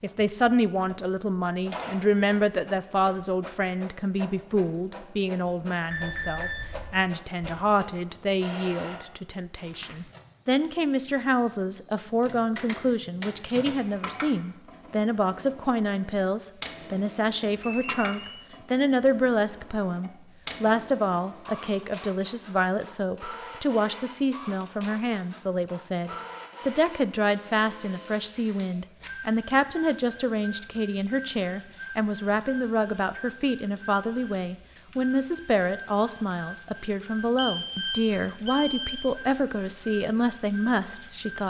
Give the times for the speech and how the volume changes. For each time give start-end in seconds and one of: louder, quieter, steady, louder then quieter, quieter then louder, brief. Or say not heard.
0.0-41.4 steady.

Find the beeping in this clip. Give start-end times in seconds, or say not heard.
5.9-6.9, 17.6-18.4, 37.4-39.0.